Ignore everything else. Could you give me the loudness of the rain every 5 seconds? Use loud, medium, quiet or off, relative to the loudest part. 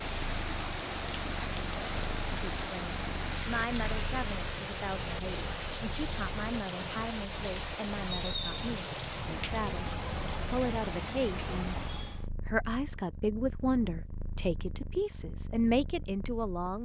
loud, loud, loud, off.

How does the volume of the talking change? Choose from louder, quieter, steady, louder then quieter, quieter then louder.
louder.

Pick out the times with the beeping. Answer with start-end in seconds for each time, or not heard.
not heard.